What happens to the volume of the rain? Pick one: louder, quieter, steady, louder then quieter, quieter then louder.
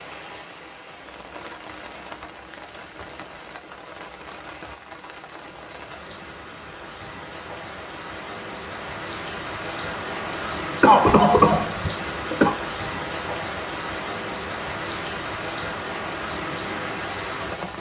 louder.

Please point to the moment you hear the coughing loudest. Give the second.
11 s.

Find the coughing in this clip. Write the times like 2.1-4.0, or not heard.
10.3-12.6.